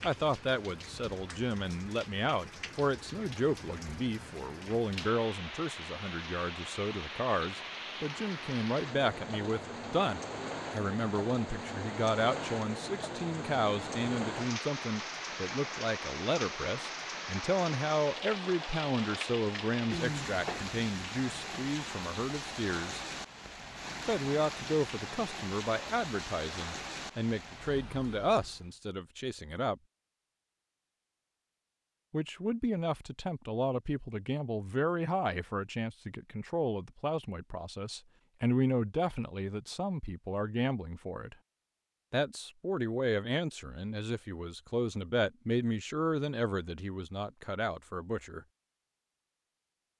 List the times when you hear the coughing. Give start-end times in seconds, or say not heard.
19.9-20.8.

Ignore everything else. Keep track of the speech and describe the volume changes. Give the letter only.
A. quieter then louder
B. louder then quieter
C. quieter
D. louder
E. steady
E.